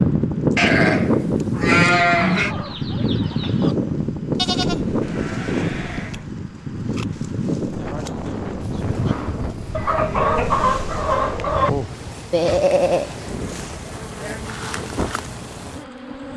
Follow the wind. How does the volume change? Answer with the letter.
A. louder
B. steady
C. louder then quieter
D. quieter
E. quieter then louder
D.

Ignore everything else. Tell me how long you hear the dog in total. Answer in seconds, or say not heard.
not heard.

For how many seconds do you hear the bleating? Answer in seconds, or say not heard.
8 s.